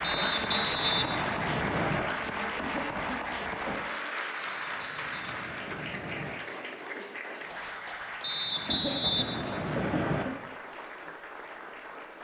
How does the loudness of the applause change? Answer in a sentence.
The volume of the applause goes down.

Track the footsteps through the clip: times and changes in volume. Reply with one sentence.
The footsteps can't be heard in this clip.